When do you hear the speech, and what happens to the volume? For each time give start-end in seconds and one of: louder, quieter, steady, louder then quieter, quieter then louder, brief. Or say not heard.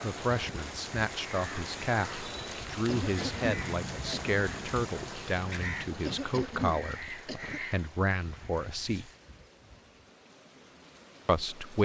0.0-9.1 steady
11.2-11.7 brief.